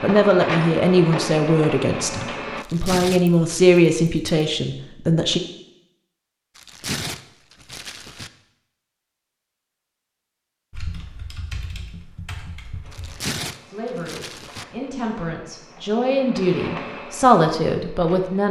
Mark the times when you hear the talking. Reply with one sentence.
You can hear the talking from 0.0 to 5.4 s and from 13.7 to 18.4 s.